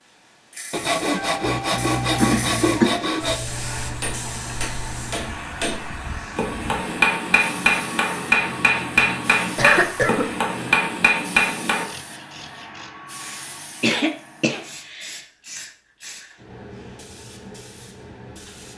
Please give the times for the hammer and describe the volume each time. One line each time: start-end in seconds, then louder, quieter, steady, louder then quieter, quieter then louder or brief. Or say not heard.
4.0-11.8 louder.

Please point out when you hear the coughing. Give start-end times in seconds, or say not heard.
2.1-3.0, 9.6-10.2, 13.2-15.2.